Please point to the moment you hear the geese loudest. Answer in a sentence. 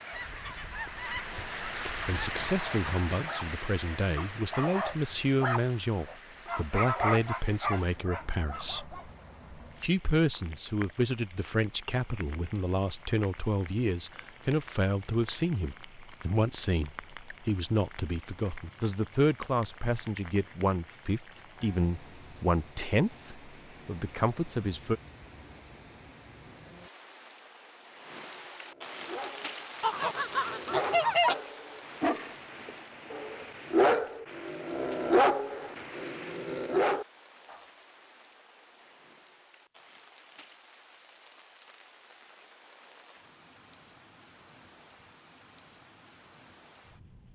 The volume of the geese peaks at 31 seconds.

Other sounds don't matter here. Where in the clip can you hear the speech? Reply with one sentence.
The speech can be heard from 1.9 to 25.0 s.